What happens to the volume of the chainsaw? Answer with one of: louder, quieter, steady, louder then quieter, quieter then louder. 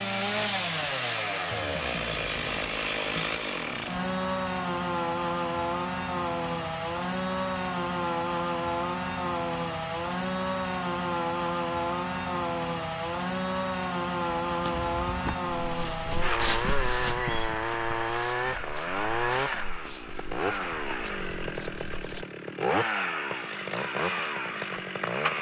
steady.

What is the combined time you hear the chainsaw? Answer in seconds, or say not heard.
25 s.